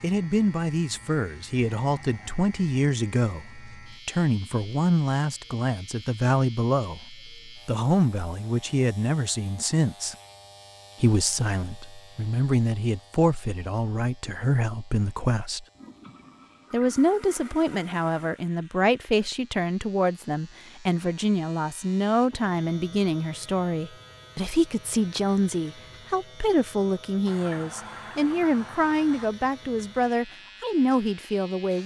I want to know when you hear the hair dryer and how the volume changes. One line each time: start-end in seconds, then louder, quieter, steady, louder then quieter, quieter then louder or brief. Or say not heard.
not heard.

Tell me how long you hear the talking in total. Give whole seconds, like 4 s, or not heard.
30 s.